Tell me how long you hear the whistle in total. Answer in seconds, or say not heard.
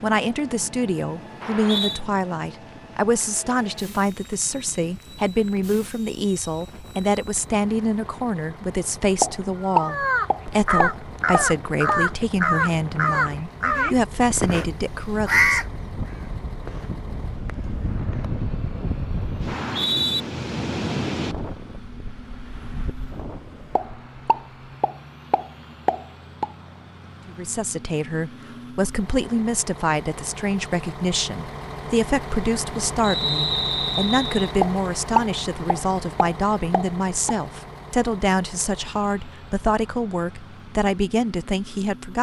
3 s.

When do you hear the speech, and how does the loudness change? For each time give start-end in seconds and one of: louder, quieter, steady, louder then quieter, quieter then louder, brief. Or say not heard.
0.0-15.6 steady
27.2-42.1 steady.